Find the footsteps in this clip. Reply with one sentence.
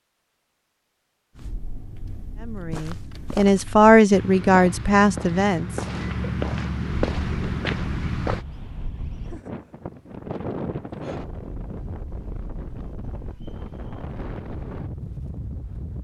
The footsteps can be heard from 1.4 to 8.4 s.